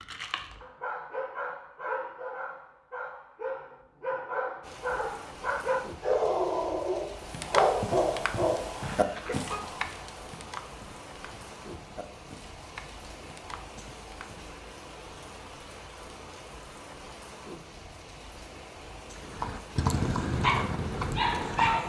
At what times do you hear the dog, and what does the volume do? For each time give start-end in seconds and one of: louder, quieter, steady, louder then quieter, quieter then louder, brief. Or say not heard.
0.0-9.6 louder
19.9-21.8 brief.